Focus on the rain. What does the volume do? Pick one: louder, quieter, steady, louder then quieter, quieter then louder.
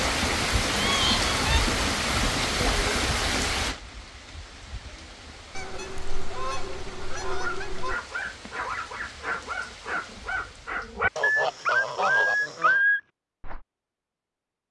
quieter.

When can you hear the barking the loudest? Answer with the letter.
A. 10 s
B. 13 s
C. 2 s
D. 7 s
B.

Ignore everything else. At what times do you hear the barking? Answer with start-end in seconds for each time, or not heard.
7.2-13.6.